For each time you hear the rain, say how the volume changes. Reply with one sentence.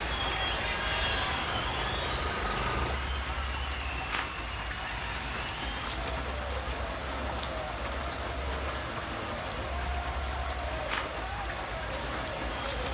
You can hear the rain from 0.0 to 12.9 s, at a steady volume.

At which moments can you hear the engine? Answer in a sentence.
The engine can be heard from 0.0 to 3.0 s.